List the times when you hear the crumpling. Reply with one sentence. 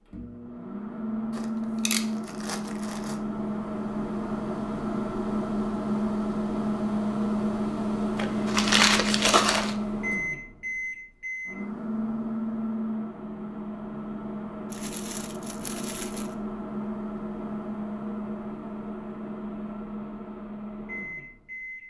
You can hear the crumpling from 1.4 to 3.2 s, from 8.2 to 9.8 s and from 14.7 to 16.4 s.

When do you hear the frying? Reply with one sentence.
You can't hear the frying here.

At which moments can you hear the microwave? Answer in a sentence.
You can hear the microwave from 0.0 to 21.8 s.